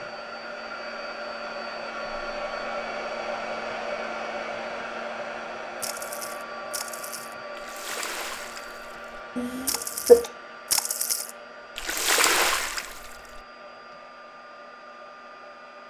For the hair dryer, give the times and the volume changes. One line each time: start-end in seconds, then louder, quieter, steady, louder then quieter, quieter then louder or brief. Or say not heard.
0.0-15.8 quieter.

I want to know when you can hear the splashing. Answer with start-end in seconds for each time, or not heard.
5.8-13.4.